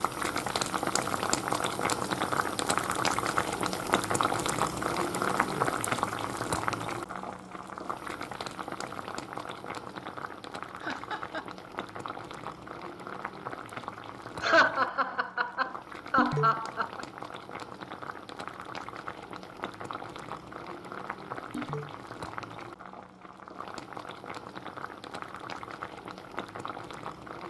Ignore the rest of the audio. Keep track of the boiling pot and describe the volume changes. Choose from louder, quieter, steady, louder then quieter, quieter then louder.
quieter.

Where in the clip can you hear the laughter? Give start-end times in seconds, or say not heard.
10.8-11.5, 14.4-17.1.